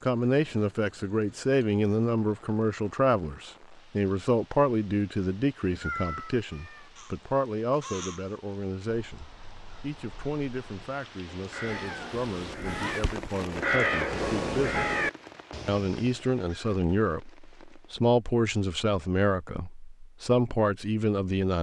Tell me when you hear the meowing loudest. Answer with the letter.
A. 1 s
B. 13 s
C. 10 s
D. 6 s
D.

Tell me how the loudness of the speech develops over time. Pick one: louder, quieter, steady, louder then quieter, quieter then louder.
quieter then louder.